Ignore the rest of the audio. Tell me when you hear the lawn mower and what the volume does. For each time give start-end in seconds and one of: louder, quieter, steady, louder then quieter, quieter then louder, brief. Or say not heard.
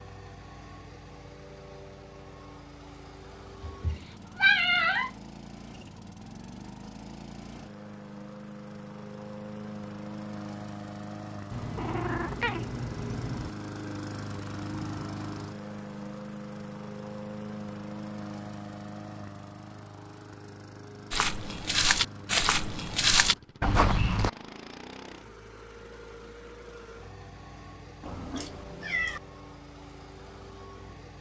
0.0-31.1 louder then quieter.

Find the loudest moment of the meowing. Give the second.
5 s.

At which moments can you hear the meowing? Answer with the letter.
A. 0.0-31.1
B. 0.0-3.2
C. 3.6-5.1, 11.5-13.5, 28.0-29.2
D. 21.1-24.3
C.